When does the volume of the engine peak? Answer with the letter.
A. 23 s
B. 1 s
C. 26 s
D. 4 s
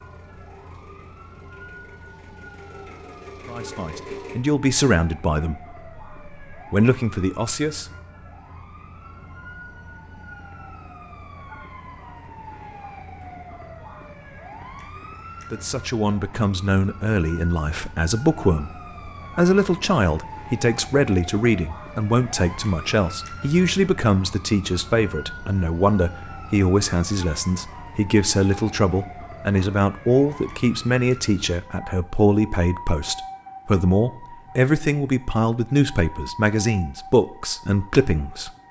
D.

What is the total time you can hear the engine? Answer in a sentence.
The engine can be heard for 4 seconds in total.